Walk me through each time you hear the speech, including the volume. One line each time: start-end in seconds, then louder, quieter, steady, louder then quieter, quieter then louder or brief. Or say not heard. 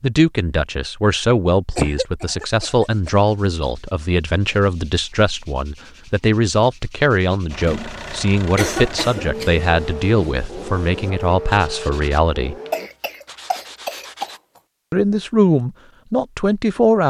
0.0-12.6 steady
14.9-17.0 brief.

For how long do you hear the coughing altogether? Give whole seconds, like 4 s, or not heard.
5 s.